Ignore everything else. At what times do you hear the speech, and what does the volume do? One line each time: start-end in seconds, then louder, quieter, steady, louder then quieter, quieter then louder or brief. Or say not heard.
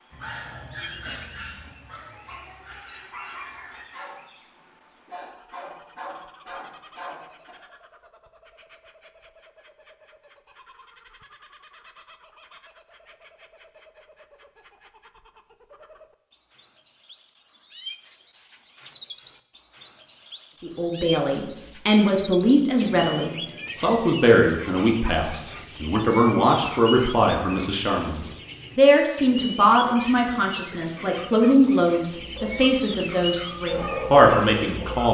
20.6-35.0 steady.